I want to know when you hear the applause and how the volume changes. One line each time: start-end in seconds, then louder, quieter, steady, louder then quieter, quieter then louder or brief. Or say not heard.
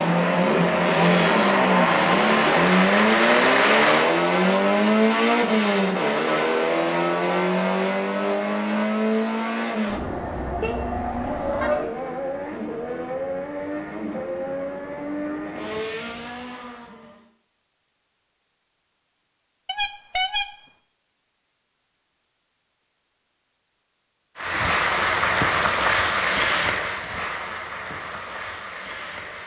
0.0-4.2 louder
24.4-29.4 quieter.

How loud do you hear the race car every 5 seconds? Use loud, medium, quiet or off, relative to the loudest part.
loud, loud, medium, quiet, off, off.